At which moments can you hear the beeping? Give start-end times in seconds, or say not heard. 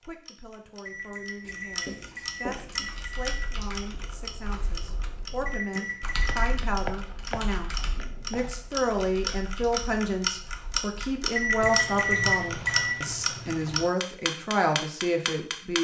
0.8-3.4, 5.5-6.5, 11.3-12.9.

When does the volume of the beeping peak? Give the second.
12 s.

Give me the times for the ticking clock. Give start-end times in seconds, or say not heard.
0.0-15.7.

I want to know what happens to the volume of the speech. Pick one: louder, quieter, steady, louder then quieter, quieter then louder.
louder.